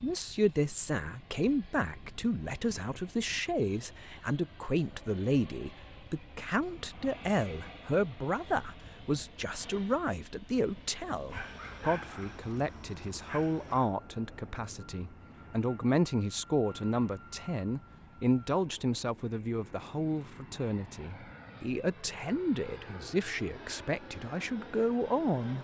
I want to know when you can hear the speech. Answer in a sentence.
You can hear the speech from 0.0 to 25.5 s.